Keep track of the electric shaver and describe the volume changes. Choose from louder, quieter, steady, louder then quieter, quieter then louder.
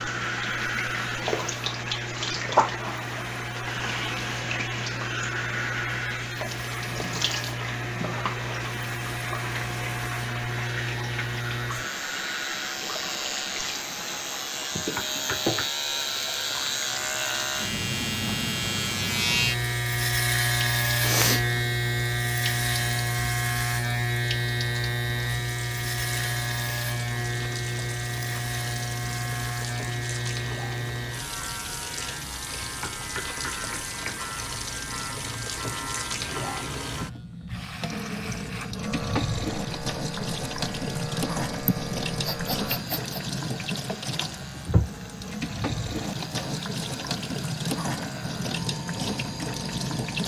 louder then quieter.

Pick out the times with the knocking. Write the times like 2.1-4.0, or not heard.
14.9-15.7, 32.8-34.1.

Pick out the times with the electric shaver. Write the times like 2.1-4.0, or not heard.
0.0-50.2.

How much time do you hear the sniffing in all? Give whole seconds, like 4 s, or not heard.
2 s.